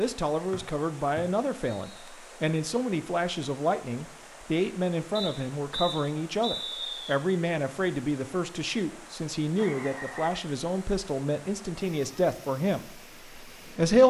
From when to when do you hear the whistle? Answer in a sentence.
You can hear the whistle from 0.5 to 2.1 s, from 5.2 to 7.2 s and from 9.6 to 10.4 s.